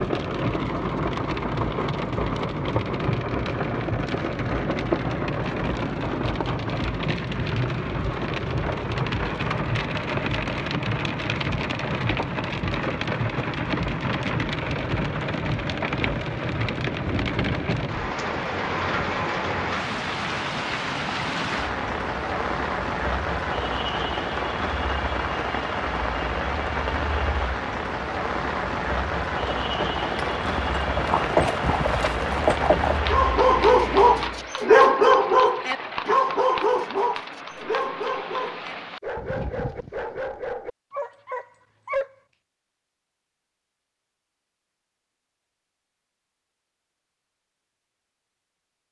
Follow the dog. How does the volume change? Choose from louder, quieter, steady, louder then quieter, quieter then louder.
quieter.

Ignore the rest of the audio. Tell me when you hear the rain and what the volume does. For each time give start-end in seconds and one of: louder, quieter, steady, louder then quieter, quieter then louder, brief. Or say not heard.
0.0-34.5 steady.